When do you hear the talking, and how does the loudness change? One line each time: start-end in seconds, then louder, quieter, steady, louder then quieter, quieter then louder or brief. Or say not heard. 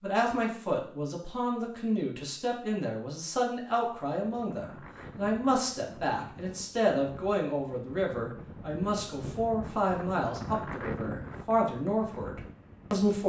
0.0-13.2 steady.